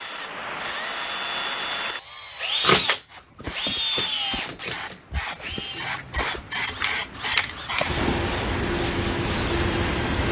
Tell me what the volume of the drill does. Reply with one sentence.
The loudness of the drill goes up, then down.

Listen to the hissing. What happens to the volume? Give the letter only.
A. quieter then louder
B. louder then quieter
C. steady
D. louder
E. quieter
D.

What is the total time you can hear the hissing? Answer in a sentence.
You can hear the hissing for 7 seconds altogether.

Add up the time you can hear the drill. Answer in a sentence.
You can hear the drill for 10 seconds altogether.